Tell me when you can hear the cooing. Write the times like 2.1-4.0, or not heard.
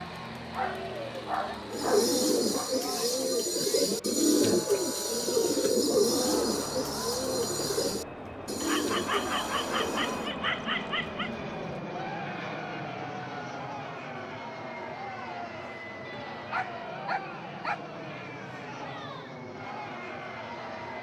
1.7-10.3.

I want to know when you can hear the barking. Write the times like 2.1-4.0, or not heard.
0.5-2.7, 8.6-11.3, 16.1-17.8.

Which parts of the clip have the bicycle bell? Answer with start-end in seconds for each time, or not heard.
not heard.